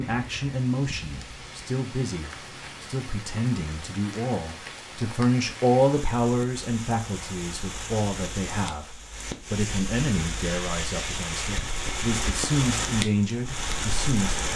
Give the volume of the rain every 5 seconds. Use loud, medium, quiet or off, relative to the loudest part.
medium, medium, loud.